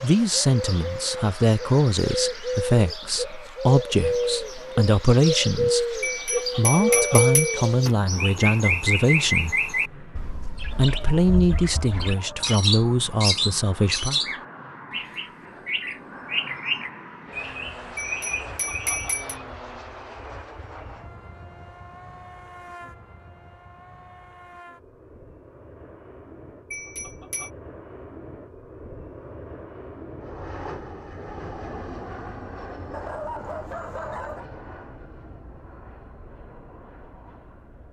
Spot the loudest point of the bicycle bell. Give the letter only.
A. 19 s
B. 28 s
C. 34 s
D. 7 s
D.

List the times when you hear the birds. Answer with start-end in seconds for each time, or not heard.
0.0-19.2.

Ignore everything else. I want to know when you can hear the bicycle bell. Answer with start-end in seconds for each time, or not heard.
6.0-8.0, 17.9-19.4, 26.7-27.5.